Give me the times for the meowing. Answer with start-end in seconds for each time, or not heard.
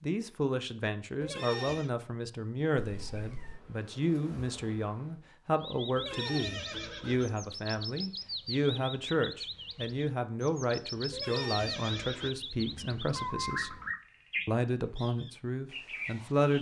2.8-3.6, 12.6-13.9.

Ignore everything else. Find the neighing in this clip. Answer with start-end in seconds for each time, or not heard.
1.2-1.9, 6.0-7.3, 11.1-12.3.